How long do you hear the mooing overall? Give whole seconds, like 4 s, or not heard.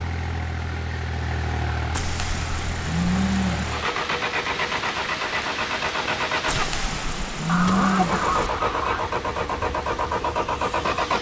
4 s.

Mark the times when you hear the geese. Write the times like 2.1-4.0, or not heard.
7.5-9.1.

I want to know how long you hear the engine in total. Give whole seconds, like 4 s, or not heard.
11 s.